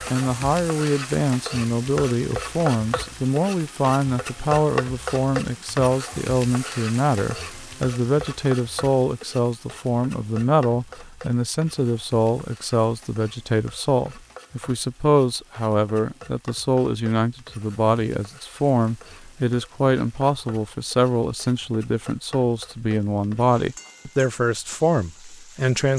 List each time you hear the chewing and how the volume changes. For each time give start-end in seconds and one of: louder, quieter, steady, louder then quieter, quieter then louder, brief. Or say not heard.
not heard.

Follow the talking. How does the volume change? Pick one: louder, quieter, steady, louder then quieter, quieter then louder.
steady.